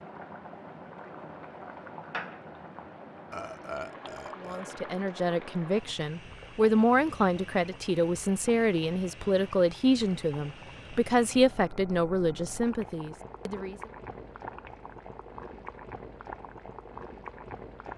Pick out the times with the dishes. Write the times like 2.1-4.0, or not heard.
not heard.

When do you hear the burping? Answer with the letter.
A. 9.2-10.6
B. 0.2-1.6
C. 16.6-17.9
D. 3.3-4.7
D.